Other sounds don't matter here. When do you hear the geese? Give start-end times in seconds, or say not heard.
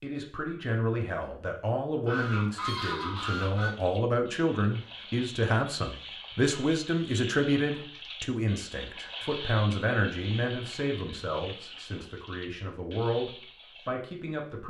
2.0-3.8.